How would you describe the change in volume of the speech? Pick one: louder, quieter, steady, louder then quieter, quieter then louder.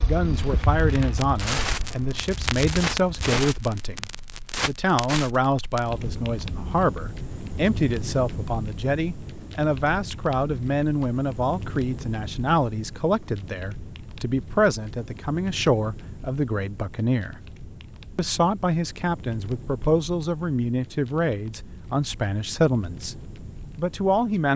steady.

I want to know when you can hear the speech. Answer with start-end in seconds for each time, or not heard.
0.1-17.4, 18.1-24.5.